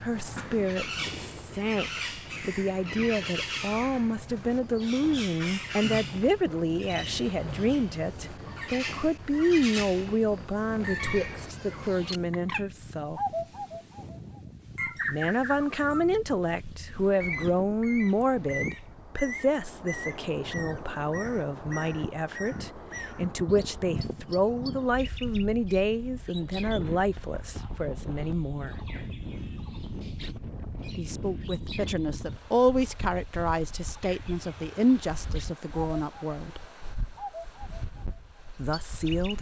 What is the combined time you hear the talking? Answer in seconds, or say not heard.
33 s.